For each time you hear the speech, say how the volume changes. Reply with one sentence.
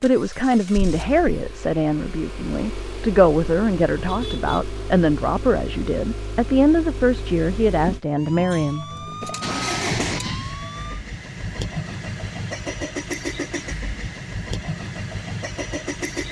The speech can be heard from 0.0 to 9.3 s, at a steady volume.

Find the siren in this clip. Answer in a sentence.
The siren can be heard from 8.2 to 11.0 s.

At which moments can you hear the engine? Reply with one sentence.
The engine can be heard from 0.0 to 16.2 s.